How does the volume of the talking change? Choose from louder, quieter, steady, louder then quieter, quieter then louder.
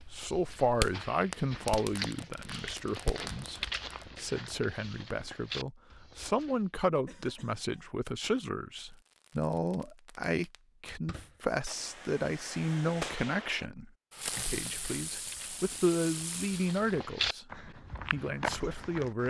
steady.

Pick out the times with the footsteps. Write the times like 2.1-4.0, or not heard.
0.0-6.7, 14.3-19.2.